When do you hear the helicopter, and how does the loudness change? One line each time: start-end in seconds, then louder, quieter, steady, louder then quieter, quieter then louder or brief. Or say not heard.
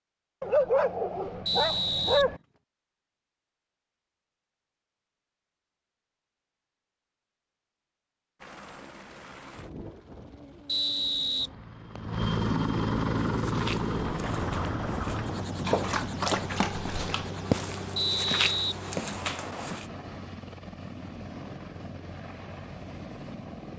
8.4-23.7 louder then quieter.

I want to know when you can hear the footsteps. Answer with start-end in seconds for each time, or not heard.
13.2-19.9.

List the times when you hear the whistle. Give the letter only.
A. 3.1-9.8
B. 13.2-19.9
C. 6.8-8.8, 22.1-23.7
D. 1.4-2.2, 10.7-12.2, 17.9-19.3
D.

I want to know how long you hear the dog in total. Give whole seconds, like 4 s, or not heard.
4 s.